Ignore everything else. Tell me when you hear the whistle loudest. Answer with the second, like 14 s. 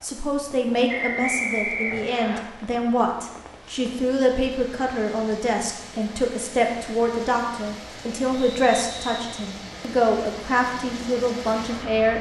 1 s.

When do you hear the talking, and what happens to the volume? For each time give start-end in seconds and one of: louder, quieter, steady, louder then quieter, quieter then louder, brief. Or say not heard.
0.0-12.1 steady.